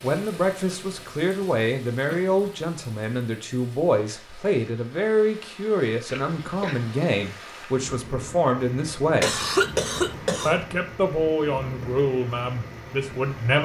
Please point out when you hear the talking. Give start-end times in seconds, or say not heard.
0.0-9.4, 10.4-13.6.